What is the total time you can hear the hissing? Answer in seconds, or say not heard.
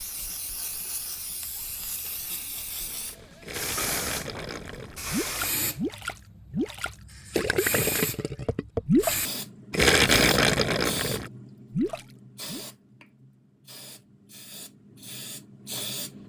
16 s.